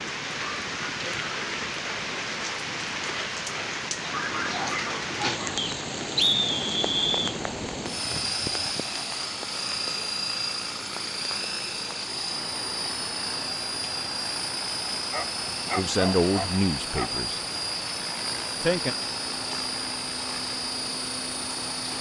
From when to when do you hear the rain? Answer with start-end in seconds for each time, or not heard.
0.0-21.9.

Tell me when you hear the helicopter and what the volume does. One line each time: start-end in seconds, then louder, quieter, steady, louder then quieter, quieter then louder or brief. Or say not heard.
0.0-21.9 louder.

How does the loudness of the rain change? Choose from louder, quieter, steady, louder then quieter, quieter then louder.
quieter.